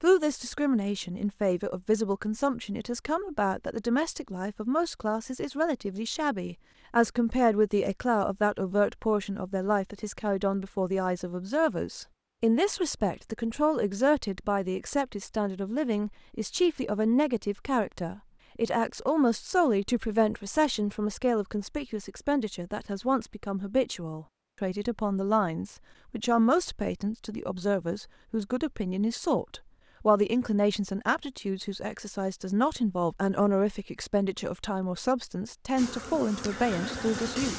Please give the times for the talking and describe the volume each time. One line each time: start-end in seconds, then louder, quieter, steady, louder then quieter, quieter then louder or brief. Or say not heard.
0.0-37.5 steady.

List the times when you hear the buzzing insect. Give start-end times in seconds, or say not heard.
35.8-37.5.